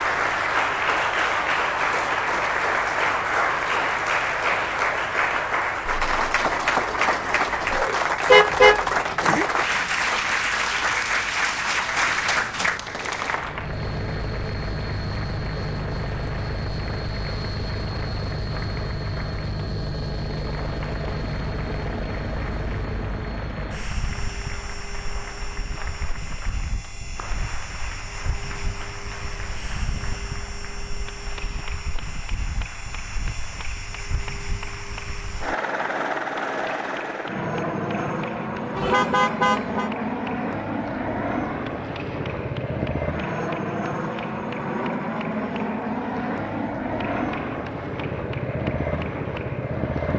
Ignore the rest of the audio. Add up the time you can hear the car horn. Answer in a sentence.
You can hear the car horn for 2 seconds altogether.